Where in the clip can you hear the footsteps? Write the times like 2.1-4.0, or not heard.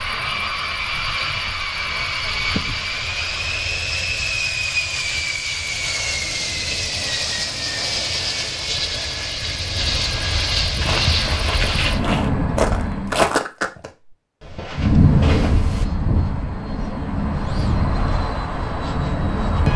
10.8-15.8.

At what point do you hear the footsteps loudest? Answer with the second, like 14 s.
13 s.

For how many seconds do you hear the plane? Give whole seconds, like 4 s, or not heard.
18 s.